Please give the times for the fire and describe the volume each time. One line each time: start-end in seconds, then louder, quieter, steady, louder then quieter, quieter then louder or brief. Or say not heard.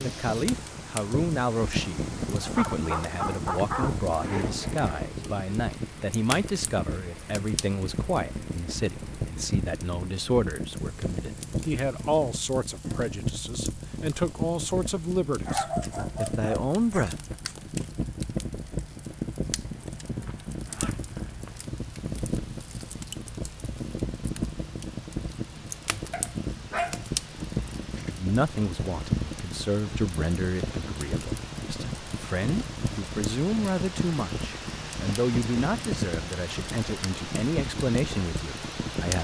0.0-39.1 steady.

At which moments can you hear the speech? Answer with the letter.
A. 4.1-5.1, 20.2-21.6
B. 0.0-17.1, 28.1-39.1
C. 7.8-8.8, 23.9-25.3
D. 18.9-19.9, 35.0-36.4
B.